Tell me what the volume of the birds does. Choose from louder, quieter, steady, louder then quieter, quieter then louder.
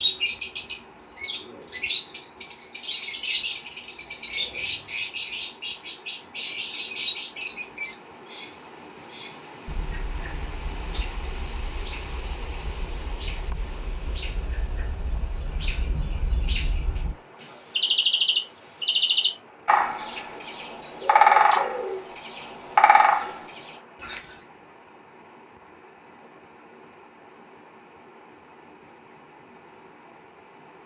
quieter then louder.